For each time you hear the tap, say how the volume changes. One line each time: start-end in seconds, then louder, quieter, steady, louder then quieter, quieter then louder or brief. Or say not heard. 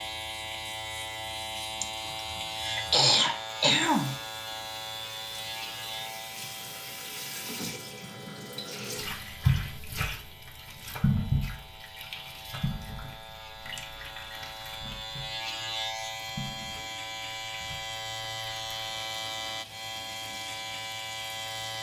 0.0-21.7 louder then quieter.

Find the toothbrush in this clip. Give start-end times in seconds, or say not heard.
not heard.